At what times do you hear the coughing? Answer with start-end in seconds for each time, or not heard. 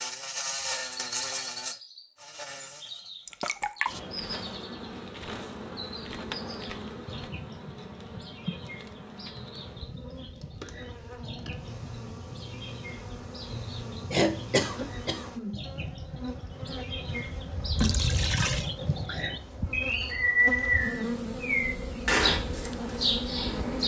14.1-15.6.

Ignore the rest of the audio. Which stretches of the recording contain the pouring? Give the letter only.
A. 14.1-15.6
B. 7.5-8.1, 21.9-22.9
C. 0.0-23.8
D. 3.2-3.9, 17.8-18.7
D.